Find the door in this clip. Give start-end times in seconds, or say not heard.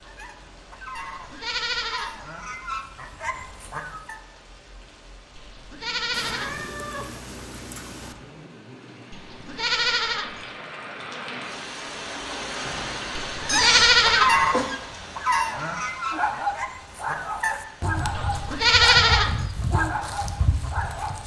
not heard.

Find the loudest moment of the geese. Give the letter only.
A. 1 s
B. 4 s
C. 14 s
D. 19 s
C.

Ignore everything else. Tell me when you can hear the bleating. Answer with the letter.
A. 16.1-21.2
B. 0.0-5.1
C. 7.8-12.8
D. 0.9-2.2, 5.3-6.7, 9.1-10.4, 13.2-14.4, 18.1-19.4
D.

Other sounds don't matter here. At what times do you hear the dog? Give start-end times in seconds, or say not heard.
16.1-21.2.